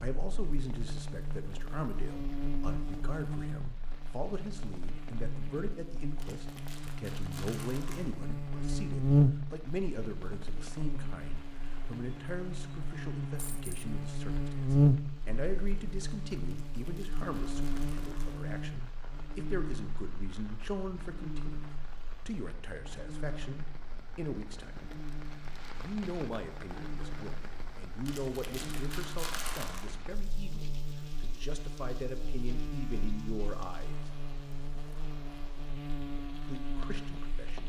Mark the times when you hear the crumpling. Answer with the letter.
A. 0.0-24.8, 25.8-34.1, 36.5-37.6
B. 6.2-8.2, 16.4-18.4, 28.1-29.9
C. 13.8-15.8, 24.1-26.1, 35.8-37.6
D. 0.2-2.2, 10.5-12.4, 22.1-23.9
B.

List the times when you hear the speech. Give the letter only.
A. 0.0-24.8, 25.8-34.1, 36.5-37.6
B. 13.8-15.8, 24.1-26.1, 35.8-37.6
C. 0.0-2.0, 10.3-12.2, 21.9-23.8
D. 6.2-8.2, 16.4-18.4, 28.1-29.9
A.